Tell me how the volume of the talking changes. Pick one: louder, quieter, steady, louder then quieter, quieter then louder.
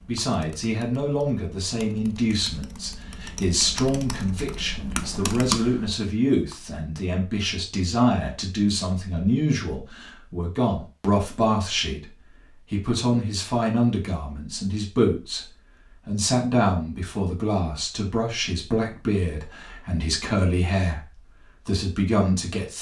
steady.